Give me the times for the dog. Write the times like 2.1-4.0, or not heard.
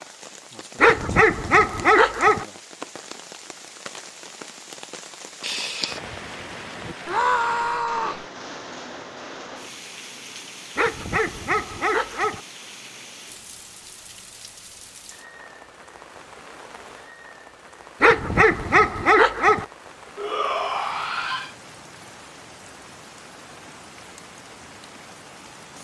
0.8-2.5, 10.8-12.4, 18.0-19.6.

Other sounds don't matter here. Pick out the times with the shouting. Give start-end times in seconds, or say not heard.
7.0-8.2, 20.1-21.5.